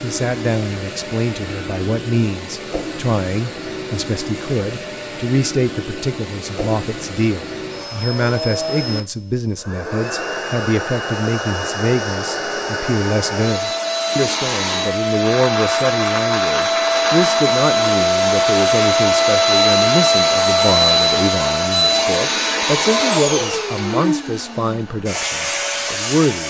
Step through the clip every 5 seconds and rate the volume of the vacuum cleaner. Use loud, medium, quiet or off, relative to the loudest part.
quiet, quiet, medium, loud, loud, medium.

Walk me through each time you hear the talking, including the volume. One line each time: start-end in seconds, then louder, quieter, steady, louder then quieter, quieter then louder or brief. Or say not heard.
0.0-26.4 steady.